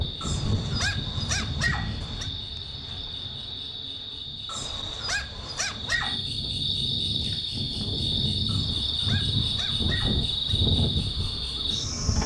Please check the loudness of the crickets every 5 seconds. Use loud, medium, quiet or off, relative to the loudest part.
medium, loud, loud.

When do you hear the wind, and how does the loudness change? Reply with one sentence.
The wind can be heard from 0.0 to 12.2 s, getting quieter then louder.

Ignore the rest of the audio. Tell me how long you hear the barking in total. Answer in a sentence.
You can hear the barking for 6 seconds altogether.